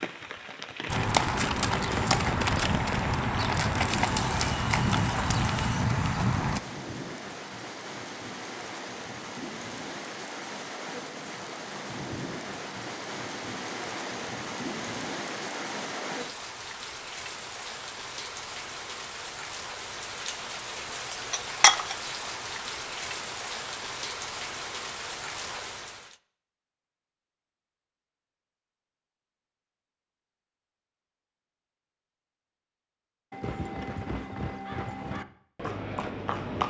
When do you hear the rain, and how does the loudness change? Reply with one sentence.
You can hear the rain from 0.0 to 26.1 s, getting louder.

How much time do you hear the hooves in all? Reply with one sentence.
The hooves can be heard for 9 seconds in total.